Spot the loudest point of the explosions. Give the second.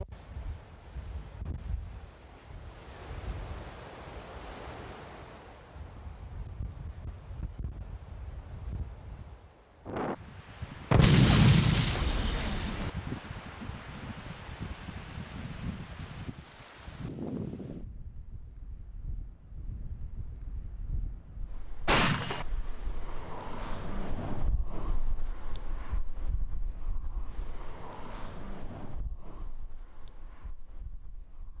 11 s.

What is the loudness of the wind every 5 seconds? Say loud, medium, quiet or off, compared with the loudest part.
medium, medium, loud, loud, loud, medium, quiet.